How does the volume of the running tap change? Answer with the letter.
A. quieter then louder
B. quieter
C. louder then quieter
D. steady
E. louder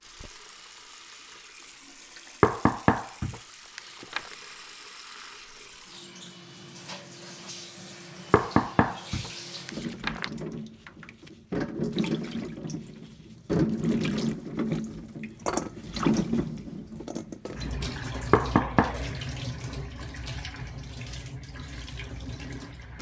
C.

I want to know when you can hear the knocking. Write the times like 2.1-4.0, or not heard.
2.4-4.2, 8.3-10.3, 18.3-18.9.